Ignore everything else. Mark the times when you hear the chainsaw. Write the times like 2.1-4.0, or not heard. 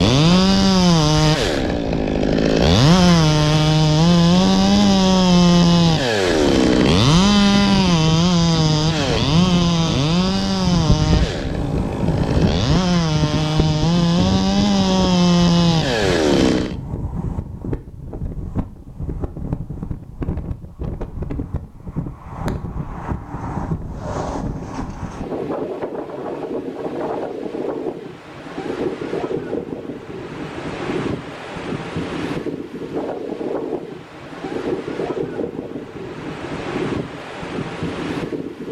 0.0-16.8.